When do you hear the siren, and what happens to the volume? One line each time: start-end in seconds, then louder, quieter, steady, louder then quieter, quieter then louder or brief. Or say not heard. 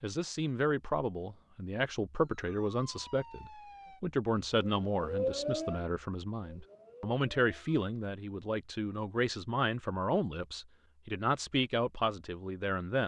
2.2-7.8 louder then quieter.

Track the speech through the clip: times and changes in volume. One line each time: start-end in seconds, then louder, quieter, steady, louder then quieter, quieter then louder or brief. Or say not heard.
0.0-13.0 steady.